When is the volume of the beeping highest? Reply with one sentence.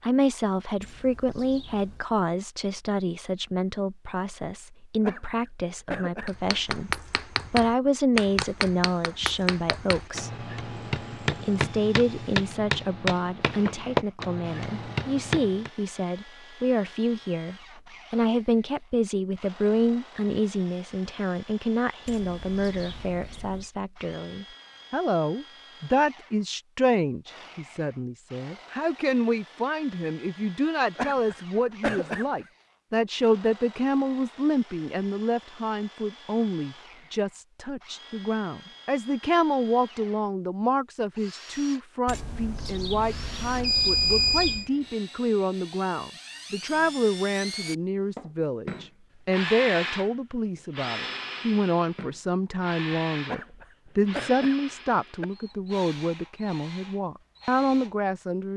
The volume of the beeping peaks at 44 seconds.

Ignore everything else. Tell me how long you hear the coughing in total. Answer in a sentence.
You can hear the coughing for 5 seconds altogether.